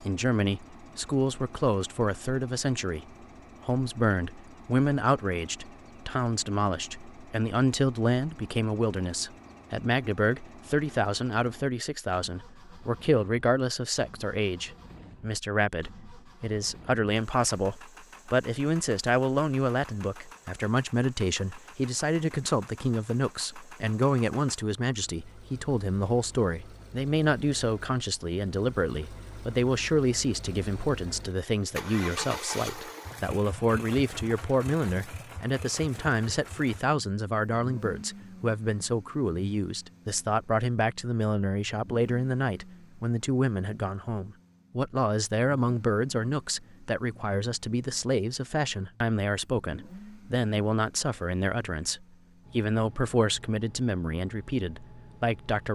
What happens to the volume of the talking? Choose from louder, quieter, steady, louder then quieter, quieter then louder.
steady.